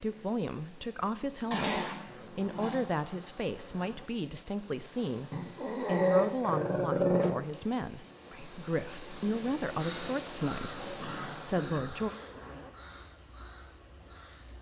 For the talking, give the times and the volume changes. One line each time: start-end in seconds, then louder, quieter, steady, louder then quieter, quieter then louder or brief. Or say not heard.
0.0-12.1 steady.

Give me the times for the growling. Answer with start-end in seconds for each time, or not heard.
1.5-2.9, 5.3-7.3, 10.9-12.2.